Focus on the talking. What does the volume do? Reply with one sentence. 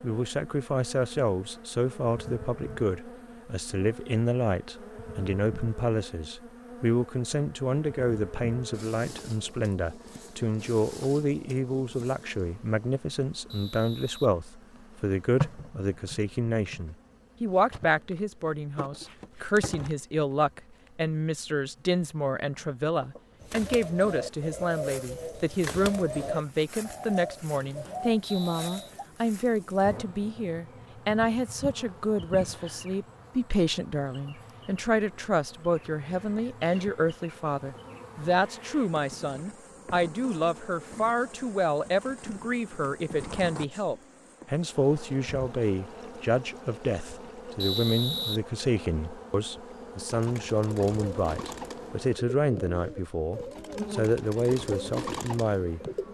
The volume of the talking stays about the same.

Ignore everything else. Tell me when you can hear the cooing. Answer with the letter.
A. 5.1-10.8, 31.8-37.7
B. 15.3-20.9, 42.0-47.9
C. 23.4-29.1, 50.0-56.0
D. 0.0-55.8
C.